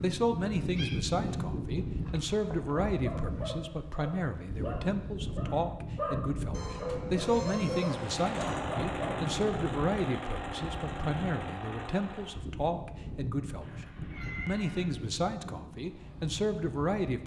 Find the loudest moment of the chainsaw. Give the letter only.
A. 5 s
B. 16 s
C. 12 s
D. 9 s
D.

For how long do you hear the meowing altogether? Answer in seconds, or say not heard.
4 s.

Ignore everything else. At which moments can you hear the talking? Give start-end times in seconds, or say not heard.
0.0-17.2.